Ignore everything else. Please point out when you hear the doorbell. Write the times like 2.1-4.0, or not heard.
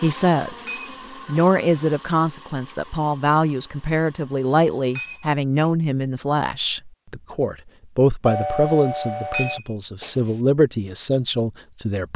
1.0-1.9, 8.2-9.6.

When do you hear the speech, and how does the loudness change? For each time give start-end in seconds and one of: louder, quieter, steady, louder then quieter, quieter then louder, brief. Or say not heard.
0.0-12.1 steady.